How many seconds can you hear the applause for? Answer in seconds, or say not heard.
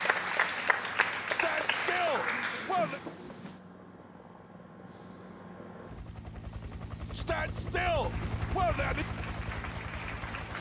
6 s.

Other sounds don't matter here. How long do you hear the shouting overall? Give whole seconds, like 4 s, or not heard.
4 s.